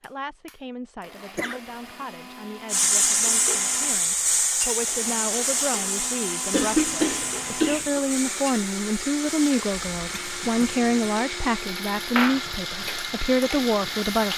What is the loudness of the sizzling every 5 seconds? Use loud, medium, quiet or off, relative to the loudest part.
loud, medium, medium.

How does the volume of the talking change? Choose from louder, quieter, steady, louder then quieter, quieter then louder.
louder.